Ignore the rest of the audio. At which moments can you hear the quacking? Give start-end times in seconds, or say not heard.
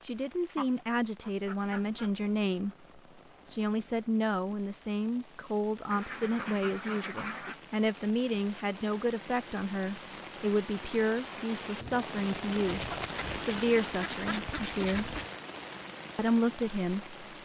0.6-2.1, 5.9-7.5, 12.5-15.3.